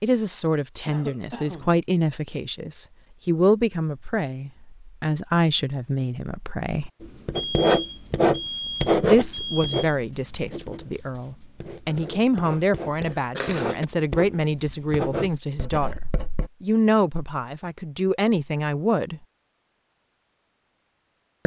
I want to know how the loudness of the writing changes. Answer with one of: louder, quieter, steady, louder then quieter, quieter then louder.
quieter then louder.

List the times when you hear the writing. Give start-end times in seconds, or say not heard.
7.0-16.5.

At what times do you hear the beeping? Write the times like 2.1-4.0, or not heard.
7.3-9.9.